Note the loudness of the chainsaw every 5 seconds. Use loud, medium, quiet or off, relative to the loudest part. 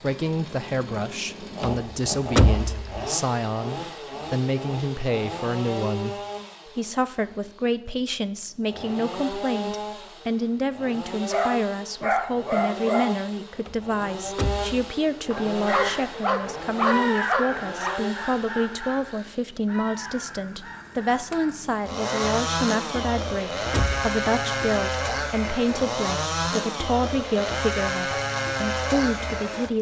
medium, medium, medium, medium, loud, loud.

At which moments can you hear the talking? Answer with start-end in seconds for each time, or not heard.
0.0-29.7.